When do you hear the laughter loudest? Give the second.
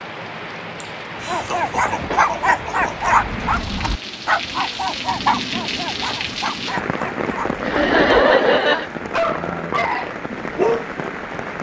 8 s.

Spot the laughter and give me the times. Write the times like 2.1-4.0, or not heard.
0.8-3.1, 7.6-8.9.